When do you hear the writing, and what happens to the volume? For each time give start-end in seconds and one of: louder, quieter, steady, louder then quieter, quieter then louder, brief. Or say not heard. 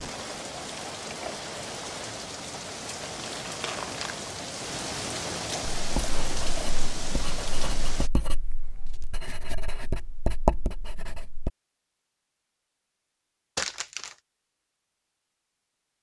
5.8-11.5 louder.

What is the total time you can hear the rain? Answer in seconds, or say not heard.
8 s.